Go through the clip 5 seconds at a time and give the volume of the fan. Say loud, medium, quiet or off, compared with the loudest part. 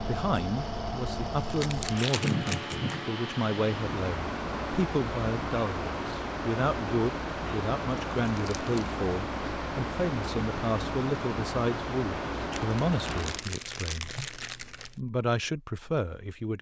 loud, loud, loud, off.